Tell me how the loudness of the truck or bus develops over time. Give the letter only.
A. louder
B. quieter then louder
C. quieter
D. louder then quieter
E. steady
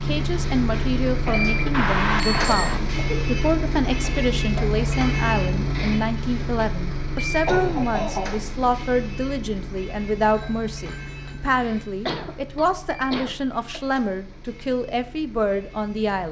C.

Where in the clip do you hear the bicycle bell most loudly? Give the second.
2 s.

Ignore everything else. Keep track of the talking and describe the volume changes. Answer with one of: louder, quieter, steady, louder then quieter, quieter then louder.
steady.